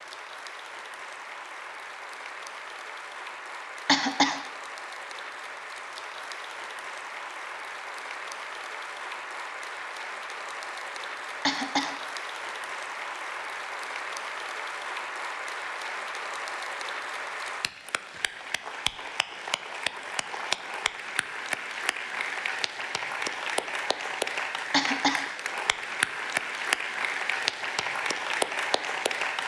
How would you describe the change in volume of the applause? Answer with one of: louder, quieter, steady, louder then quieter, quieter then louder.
louder.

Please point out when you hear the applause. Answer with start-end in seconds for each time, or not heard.
0.0-29.4.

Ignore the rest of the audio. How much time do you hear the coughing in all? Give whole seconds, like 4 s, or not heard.
2 s.